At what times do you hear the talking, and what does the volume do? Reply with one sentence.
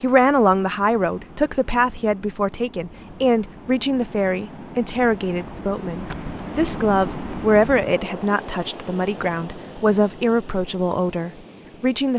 The talking can be heard from 0.0 to 12.1 s, at a steady volume.